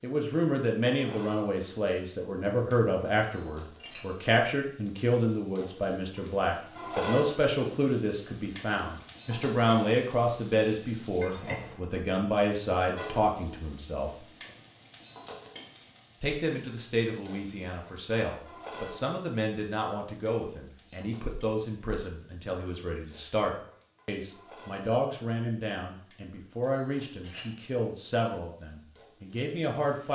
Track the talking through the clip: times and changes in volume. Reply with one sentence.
The talking can be heard from 0.0 to 14.1 s, at a steady volume; and from 16.2 to 30.1 s, at a steady volume.